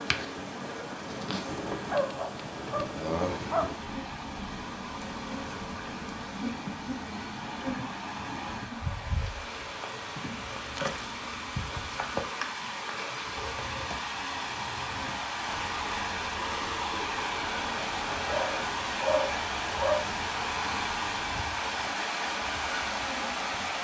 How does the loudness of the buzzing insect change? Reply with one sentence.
The volume of the buzzing insect goes down.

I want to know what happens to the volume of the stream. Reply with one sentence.
The volume of the stream goes up.